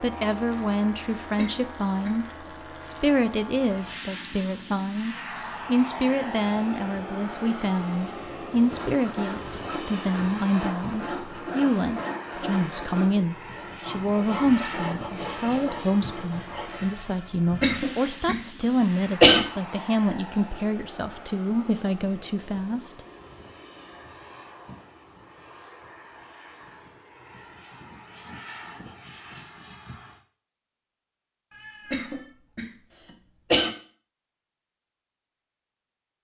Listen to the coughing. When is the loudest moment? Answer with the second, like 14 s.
19 s.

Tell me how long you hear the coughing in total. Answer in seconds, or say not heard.
5 s.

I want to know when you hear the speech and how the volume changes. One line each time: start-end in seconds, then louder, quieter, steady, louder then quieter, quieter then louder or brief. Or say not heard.
0.0-23.0 steady.